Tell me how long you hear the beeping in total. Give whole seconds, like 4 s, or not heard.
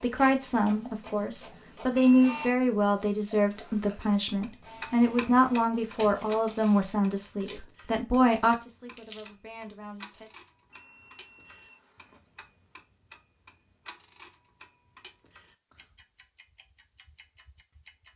2 s.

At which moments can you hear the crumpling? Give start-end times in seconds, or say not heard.
8.9-9.3.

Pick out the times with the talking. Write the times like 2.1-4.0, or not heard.
0.0-10.3.